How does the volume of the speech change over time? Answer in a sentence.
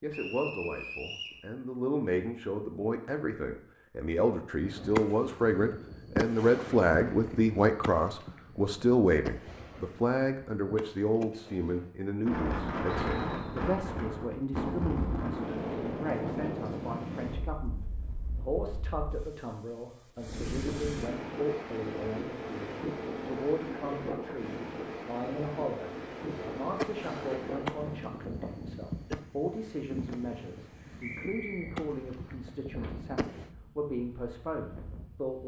The loudness of the speech goes down.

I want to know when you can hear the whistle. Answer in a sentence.
The whistle can be heard from 0.1 to 1.4 s, from 13.0 to 13.5 s and from 31.0 to 31.8 s.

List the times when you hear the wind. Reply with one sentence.
The wind can be heard from 12.2 to 35.4 s.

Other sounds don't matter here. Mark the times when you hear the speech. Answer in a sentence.
You can hear the speech from 0.0 to 35.4 s.